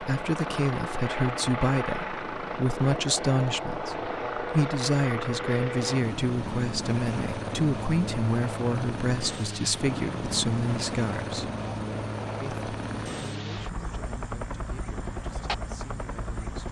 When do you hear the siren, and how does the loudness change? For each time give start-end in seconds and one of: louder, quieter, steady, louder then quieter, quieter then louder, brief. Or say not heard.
not heard.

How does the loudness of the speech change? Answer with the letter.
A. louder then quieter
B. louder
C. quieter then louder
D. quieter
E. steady
D.